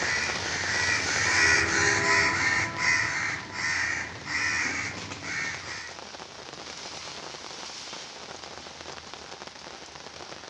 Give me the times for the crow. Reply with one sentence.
You can hear the crow from 0.0 to 6.0 s.